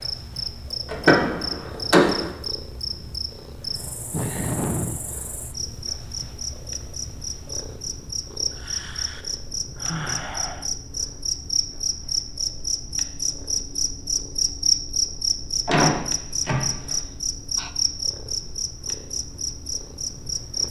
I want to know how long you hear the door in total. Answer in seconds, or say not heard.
3 s.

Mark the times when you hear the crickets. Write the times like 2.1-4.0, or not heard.
0.0-20.6.